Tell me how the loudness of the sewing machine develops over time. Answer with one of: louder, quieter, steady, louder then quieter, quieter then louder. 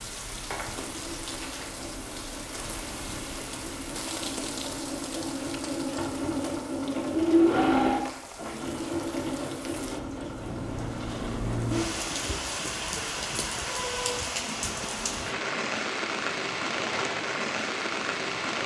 louder then quieter.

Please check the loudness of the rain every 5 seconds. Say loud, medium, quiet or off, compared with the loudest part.
medium, quiet, loud, loud.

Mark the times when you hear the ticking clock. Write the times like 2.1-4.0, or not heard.
not heard.